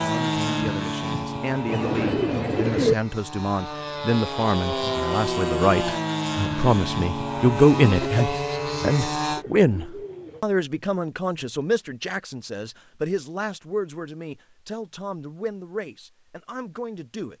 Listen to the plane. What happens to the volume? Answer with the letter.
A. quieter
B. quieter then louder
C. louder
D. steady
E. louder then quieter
B.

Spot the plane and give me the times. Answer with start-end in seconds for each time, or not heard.
0.0-9.4.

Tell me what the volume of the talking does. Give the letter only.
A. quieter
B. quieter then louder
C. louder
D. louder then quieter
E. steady
D.